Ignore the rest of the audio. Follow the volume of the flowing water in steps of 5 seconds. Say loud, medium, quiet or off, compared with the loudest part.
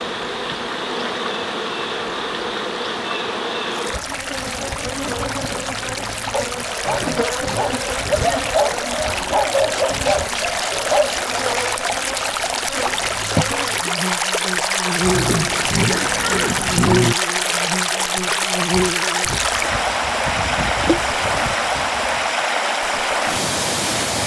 medium, medium, loud, loud, loud.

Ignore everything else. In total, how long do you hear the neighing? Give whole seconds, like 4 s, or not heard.
4 s.